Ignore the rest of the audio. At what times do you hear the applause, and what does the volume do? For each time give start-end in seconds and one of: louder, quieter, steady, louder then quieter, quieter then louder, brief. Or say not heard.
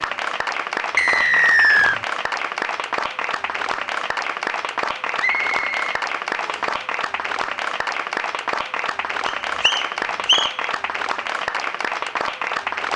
0.0-12.9 steady.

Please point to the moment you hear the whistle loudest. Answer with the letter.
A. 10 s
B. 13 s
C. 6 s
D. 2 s
D.